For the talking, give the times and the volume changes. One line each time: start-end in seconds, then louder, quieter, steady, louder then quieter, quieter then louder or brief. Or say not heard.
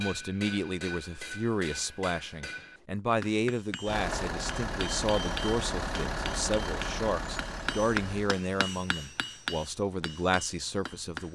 0.0-11.2 steady.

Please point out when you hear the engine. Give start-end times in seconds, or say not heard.
3.9-8.3.